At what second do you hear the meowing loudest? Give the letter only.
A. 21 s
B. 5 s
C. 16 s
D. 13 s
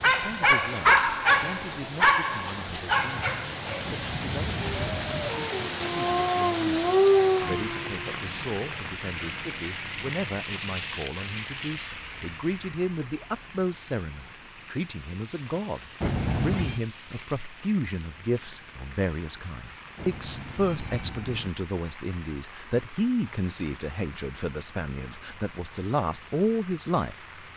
C.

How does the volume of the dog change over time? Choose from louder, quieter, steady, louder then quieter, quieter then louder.
quieter then louder.